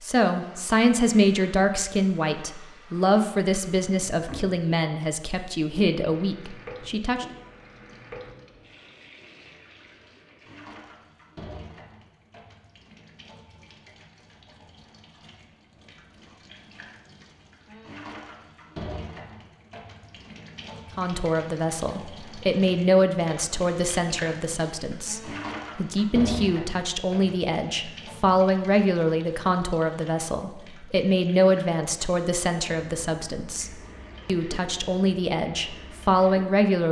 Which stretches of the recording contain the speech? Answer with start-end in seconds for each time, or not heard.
0.0-7.2, 20.9-36.8.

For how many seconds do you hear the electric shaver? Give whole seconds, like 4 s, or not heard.
not heard.